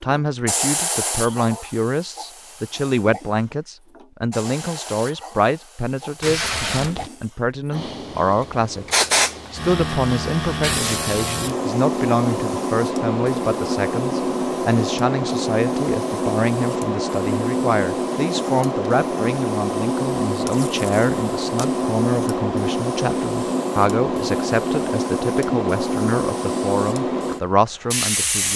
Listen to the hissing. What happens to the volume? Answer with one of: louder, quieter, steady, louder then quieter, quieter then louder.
louder.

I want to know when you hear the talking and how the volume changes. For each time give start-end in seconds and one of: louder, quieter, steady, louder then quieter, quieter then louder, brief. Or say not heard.
0.0-28.5 steady.